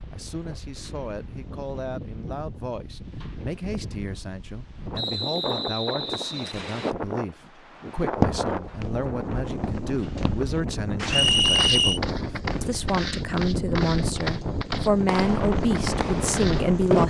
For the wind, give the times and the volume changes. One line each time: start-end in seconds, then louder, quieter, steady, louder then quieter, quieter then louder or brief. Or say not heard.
0.0-17.0 louder.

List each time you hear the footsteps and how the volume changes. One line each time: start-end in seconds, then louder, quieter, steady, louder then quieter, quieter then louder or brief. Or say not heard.
8.1-16.6 louder.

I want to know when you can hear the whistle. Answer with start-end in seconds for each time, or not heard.
4.9-7.0, 11.1-12.0.